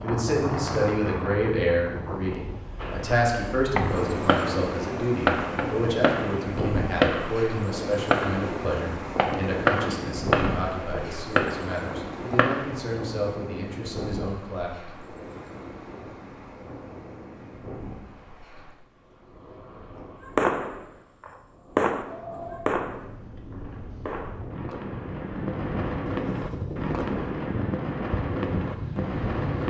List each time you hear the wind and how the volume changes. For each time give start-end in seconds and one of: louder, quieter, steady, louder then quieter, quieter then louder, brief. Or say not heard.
0.0-29.6 quieter then louder.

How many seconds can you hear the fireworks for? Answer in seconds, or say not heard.
19 s.